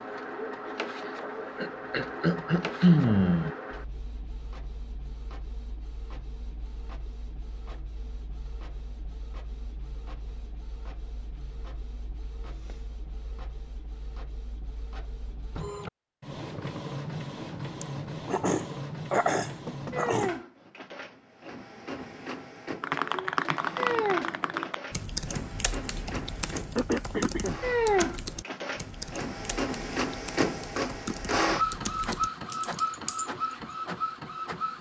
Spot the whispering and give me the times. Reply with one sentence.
You can't hear the whispering here.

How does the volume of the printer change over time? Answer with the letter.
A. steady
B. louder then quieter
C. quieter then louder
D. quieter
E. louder
C.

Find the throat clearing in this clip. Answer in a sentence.
The throat clearing can be heard from 1.6 to 3.5 s, from 17.8 to 20.4 s and from 26.8 to 27.6 s.